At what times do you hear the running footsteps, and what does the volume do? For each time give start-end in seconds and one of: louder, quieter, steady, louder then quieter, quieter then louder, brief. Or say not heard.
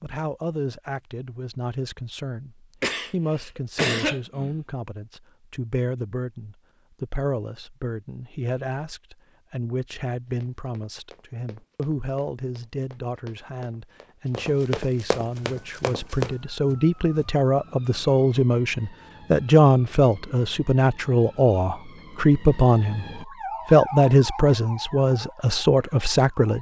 10.2-16.4 louder.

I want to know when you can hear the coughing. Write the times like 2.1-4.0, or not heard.
2.8-4.5.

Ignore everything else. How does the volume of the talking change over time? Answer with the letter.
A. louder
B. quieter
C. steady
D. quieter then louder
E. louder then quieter
A.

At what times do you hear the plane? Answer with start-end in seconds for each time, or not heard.
not heard.